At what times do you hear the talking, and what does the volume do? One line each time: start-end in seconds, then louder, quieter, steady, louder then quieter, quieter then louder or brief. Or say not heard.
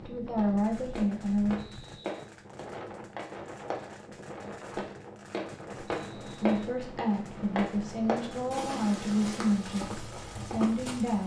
0.0-1.6 brief
6.4-11.2 steady.